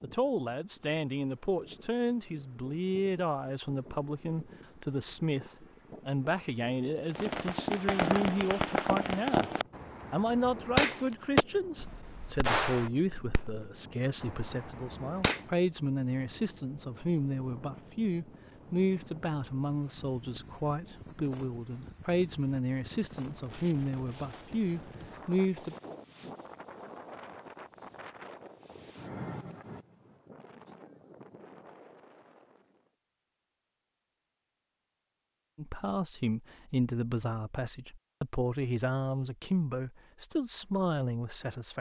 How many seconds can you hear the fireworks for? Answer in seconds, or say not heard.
8 s.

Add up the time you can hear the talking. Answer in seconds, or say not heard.
31 s.